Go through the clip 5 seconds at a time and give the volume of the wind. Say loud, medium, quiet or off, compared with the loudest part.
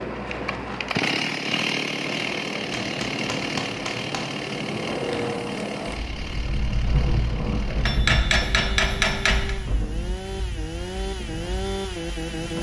loud, loud, medium.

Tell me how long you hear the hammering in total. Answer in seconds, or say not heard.
3 s.